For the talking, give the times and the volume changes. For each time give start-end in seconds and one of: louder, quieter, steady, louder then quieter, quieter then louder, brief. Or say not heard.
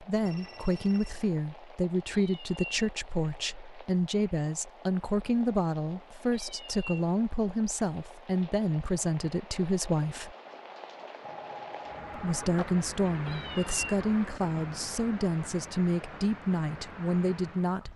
0.0-10.3 steady
12.1-17.9 steady.